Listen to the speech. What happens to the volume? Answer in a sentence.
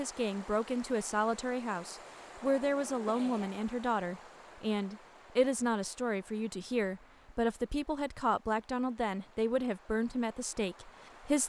The loudness of the speech stays about the same.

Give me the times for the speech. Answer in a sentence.
You can hear the speech from 0.0 to 11.4 s.